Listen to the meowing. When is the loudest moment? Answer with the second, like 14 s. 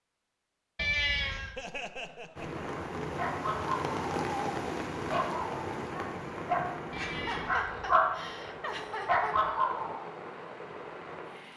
1 s.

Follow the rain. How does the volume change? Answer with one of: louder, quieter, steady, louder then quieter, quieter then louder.
quieter.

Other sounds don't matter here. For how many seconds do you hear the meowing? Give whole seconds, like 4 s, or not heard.
2 s.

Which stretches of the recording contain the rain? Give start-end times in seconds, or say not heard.
2.4-11.5.